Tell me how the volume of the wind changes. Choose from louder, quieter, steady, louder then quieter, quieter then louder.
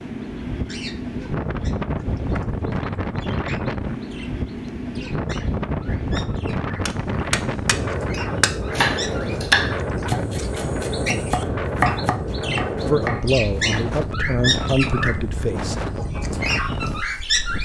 steady.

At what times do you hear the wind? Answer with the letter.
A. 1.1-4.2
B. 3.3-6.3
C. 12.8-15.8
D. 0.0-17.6
D.